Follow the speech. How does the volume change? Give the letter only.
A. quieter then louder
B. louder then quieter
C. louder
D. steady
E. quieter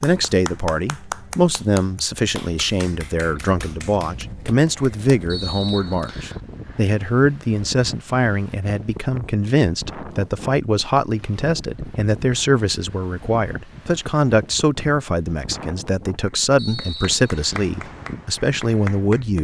D.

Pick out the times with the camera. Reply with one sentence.
You can't hear the camera here.